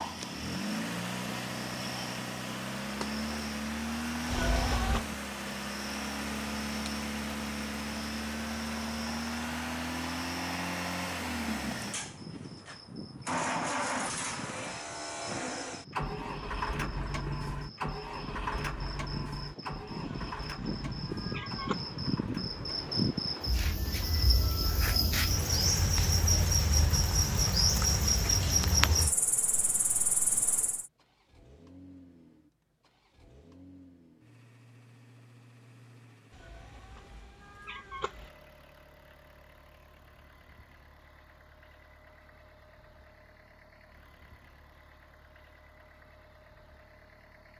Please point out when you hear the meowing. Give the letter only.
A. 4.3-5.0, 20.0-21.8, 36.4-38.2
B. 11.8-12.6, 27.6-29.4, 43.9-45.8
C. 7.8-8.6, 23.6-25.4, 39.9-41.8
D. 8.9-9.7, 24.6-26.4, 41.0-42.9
A.